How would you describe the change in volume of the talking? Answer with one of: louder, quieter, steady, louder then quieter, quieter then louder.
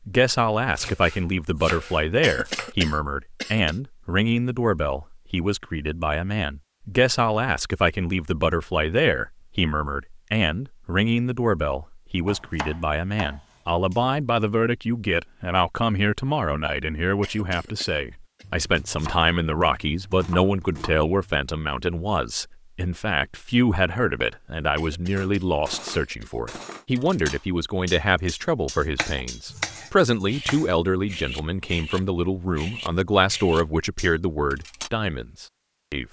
steady.